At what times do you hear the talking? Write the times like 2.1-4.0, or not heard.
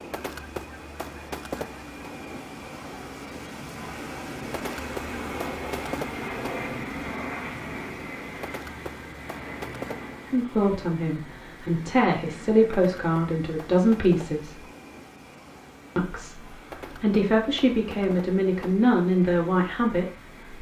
10.3-14.7, 15.9-20.5.